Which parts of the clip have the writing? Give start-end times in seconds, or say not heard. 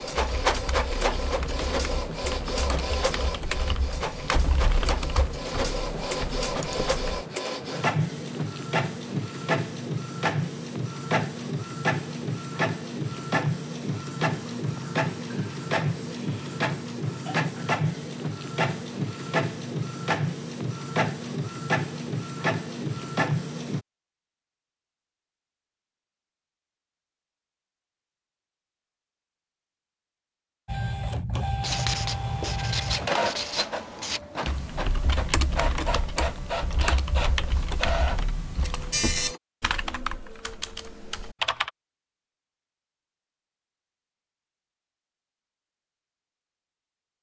31.6-34.2.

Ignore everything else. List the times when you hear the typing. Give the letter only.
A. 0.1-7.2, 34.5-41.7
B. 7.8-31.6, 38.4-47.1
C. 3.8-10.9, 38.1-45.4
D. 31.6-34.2
A.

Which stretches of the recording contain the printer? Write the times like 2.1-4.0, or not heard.
0.0-23.9, 30.6-39.4.